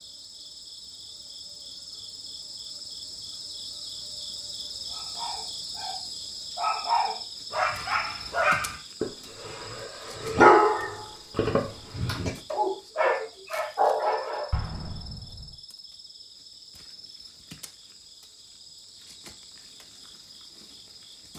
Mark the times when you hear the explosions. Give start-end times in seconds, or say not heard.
14.5-15.6.